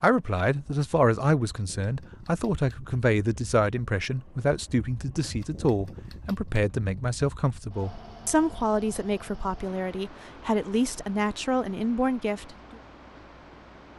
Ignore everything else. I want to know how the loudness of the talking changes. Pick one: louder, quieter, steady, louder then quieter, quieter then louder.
steady.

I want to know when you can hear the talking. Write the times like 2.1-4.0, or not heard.
0.0-12.4.